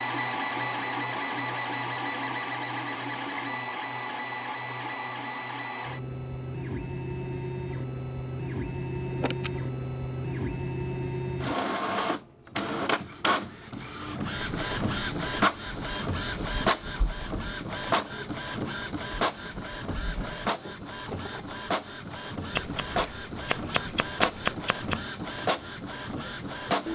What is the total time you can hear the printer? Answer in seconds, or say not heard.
27 s.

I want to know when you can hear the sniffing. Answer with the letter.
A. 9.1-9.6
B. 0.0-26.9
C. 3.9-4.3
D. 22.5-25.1
A.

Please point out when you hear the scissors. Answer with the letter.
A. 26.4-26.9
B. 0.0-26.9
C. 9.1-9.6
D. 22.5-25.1
D.